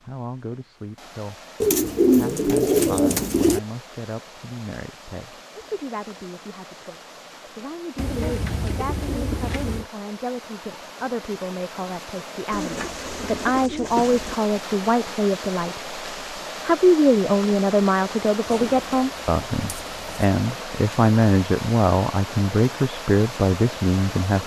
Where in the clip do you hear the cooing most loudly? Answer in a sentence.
The volume of the cooing peaks at 2 seconds.